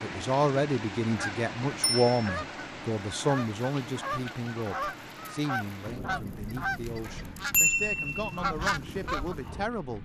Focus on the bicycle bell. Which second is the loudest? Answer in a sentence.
The loudest moment of the bicycle bell is at 8 seconds.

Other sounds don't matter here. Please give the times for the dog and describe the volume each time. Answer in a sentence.
You can't hear the dog here.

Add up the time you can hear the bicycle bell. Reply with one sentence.
You can hear the bicycle bell for 2 seconds altogether.